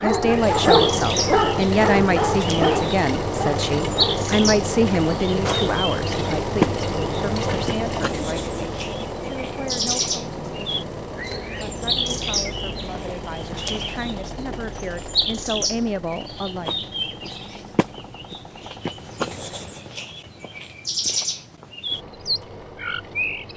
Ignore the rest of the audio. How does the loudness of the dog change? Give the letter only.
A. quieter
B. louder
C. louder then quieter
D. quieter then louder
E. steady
A.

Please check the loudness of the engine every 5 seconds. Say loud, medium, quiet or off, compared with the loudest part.
loud, loud, medium, quiet, quiet.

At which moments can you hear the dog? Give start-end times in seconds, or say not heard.
0.0-4.2.